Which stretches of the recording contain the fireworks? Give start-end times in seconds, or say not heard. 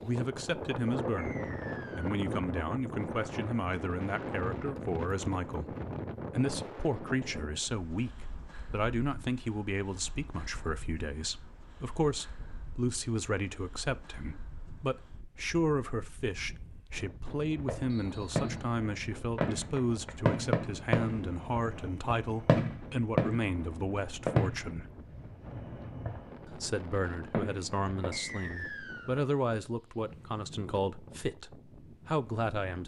17.4-29.3.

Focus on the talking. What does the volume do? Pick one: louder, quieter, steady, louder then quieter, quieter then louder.
steady.